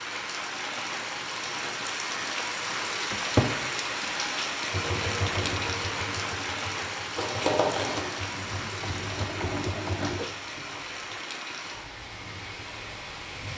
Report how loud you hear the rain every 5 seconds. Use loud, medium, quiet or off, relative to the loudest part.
loud, loud, medium.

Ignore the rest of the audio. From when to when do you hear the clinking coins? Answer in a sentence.
The clinking coins can't be heard in this clip.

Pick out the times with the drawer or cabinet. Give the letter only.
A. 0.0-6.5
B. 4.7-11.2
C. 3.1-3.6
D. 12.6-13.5
C.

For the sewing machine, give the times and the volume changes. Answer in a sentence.
You can hear the sewing machine from 4.7 to 11.2 s, getting quieter then louder.